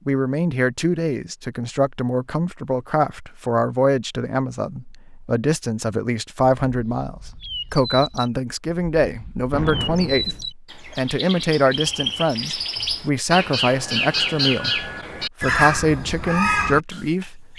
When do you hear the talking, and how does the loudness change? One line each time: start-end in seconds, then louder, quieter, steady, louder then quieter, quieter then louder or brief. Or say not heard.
0.1-17.5 steady.